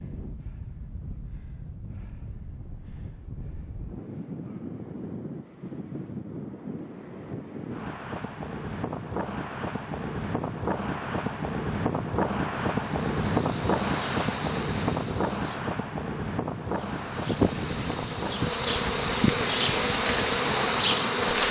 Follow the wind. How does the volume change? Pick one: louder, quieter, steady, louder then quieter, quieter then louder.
louder then quieter.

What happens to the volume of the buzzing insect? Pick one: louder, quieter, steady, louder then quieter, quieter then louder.
louder.